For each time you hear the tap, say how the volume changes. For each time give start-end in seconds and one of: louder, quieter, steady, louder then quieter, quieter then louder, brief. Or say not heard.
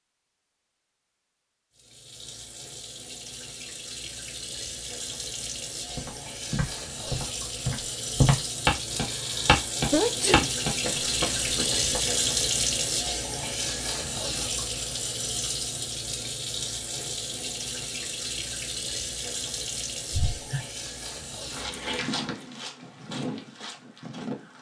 1.8-22.2 louder then quieter.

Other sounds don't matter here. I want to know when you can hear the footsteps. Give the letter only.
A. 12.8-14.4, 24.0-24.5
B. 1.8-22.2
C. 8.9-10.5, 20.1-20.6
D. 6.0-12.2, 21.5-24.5
D.